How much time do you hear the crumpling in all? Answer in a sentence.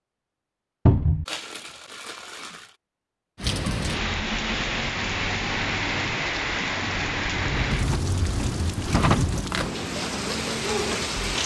You can hear the crumpling for 2 seconds altogether.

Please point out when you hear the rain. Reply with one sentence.
You can hear the rain from 3.4 to 11.4 s.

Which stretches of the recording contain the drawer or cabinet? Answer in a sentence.
The drawer or cabinet can be heard from 0.8 to 1.2 s and from 7.2 to 9.4 s.